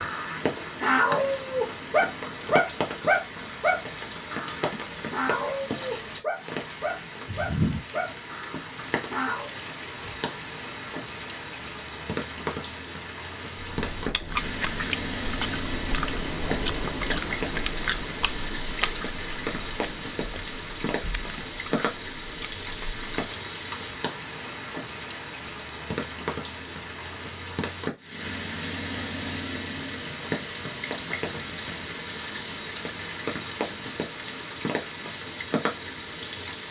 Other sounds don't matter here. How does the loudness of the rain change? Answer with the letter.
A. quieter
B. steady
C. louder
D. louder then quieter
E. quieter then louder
B.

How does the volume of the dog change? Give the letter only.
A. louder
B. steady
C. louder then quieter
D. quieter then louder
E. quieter
E.